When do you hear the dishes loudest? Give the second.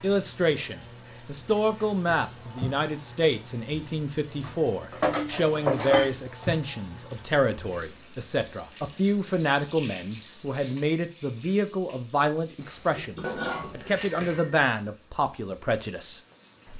6 s.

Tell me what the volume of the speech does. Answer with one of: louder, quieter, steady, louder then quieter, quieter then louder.
steady.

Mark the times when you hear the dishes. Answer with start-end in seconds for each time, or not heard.
4.4-6.1, 12.9-14.6.